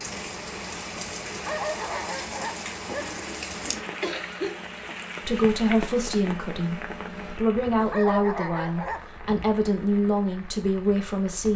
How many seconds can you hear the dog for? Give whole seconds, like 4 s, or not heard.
3 s.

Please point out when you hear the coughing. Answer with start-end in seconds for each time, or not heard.
2.9-4.6.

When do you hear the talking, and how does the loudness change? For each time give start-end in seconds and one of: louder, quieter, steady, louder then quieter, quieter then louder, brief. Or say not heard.
5.2-11.5 steady.